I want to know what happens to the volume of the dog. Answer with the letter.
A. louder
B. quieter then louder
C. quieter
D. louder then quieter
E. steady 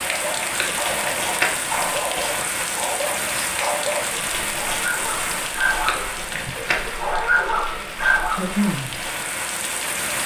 A.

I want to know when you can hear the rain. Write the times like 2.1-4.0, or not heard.
0.0-10.2.